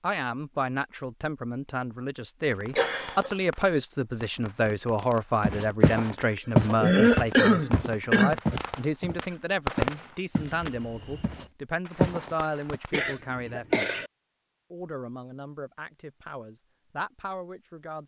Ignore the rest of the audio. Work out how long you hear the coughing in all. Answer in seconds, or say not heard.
4 s.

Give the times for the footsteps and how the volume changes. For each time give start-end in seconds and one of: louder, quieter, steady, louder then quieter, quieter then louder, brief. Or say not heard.
5.4-10.6 quieter
11.2-12.8 brief.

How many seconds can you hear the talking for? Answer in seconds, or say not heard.
17 s.